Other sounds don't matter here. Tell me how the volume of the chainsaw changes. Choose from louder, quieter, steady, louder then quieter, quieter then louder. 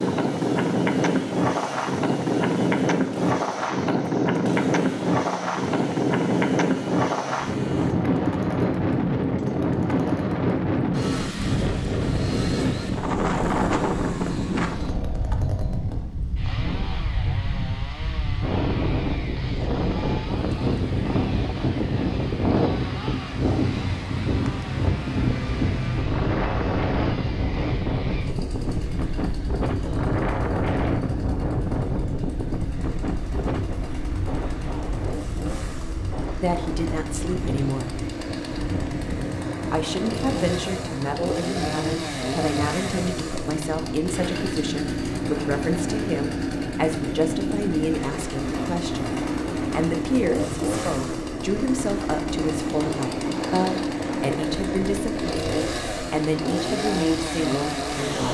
louder.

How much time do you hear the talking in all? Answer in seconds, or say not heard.
20 s.